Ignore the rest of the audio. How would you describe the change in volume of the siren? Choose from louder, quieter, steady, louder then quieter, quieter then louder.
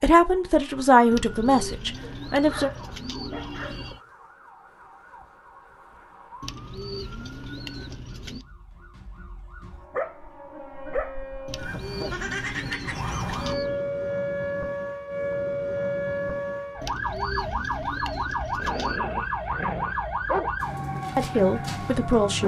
louder.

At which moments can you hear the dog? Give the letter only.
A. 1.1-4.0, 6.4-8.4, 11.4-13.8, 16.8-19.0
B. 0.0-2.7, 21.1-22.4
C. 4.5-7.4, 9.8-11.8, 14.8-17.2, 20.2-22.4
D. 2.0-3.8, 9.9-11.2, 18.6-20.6
D.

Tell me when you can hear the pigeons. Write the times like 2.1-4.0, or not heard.
1.1-4.0, 6.4-8.4, 11.4-13.8, 16.8-19.0.